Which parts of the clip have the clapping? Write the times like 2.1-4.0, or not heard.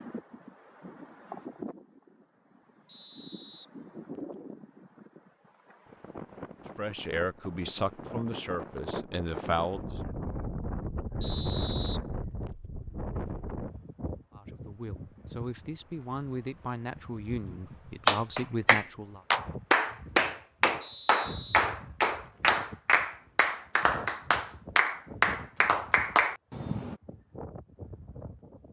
18.1-26.9.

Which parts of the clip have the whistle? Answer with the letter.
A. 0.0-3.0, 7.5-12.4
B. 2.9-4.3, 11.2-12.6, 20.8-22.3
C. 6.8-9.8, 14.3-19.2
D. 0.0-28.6
B.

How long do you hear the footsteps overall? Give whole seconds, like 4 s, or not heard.
not heard.